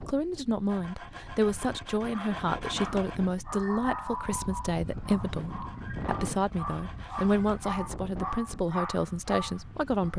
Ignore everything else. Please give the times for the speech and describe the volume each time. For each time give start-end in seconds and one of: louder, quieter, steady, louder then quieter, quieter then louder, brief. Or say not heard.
0.0-10.1 steady.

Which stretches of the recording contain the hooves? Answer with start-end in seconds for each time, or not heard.
not heard.